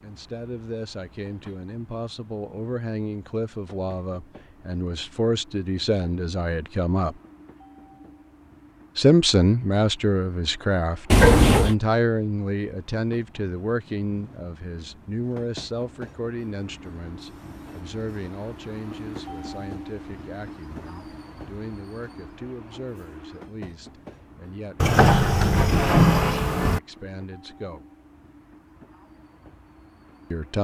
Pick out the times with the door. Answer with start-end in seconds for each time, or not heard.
11.1-11.8, 24.8-26.8.